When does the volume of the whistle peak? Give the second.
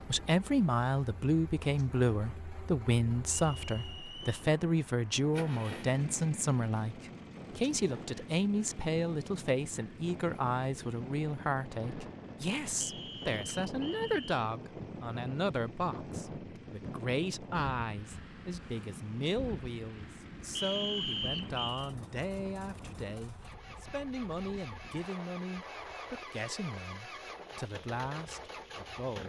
21 s.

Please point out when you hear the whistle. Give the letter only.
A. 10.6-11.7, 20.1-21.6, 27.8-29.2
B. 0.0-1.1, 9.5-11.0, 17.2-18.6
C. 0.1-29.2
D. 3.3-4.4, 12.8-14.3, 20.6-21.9
D.